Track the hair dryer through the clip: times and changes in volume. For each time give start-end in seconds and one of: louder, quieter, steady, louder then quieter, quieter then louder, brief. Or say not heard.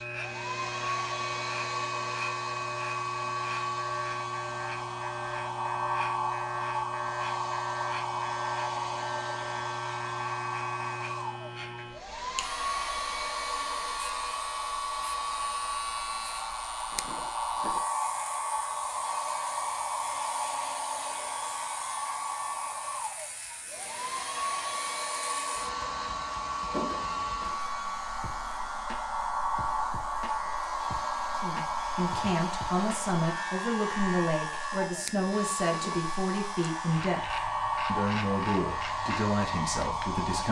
0.0-40.4 steady.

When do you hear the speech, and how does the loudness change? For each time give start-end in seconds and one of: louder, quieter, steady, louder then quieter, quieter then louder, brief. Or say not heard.
31.4-40.4 steady.